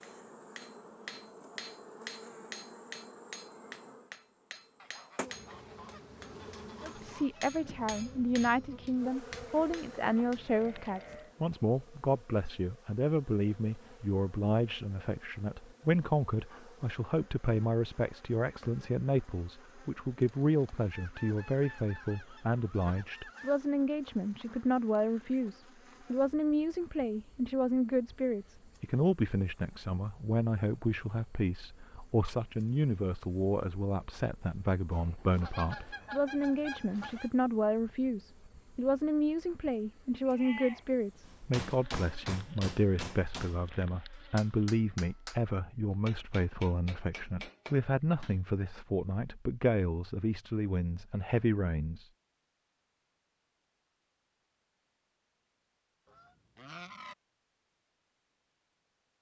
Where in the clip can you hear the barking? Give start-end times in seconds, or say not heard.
not heard.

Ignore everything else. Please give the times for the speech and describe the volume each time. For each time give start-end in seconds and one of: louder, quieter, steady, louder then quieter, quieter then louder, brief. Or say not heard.
6.8-52.0 steady.